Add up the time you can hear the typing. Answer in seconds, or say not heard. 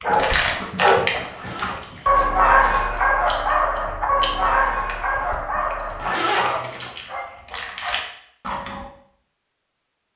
not heard.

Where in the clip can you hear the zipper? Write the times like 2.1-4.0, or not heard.
1.3-3.1, 6.0-6.9.